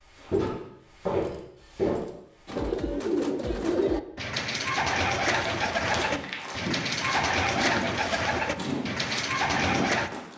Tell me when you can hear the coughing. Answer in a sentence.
The coughing can't be heard in this clip.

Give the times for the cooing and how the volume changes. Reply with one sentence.
You can hear the cooing from 2.5 to 10.1 s, at a steady volume.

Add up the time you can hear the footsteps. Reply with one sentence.
The footsteps can be heard for 8 seconds in total.